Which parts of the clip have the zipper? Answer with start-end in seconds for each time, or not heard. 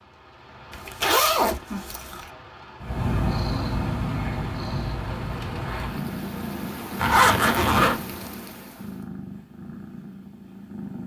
0.7-2.2, 7.0-8.0.